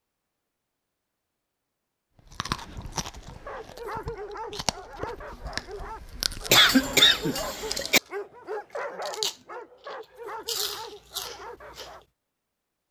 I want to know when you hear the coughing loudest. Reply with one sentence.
The volume of the coughing peaks at 7 seconds.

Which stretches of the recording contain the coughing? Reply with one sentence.
You can hear the coughing from 6.5 to 8.0 s.